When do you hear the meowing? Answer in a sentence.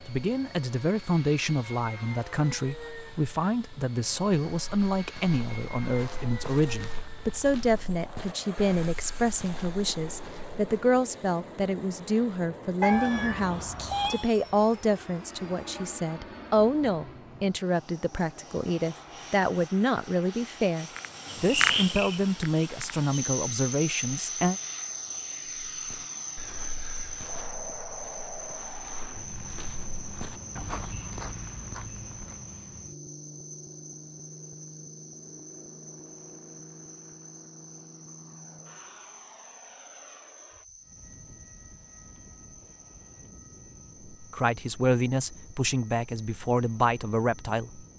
The meowing can be heard from 12.8 to 14.3 s.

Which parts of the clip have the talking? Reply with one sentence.
You can hear the talking from 0.1 to 24.6 s and from 44.1 to 47.9 s.